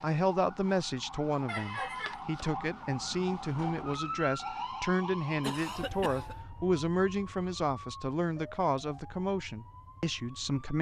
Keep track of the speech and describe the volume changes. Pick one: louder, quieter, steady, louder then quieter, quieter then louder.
steady.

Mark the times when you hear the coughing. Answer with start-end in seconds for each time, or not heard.
1.4-2.2, 5.4-6.4.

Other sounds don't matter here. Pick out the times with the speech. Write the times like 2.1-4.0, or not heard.
0.0-10.7.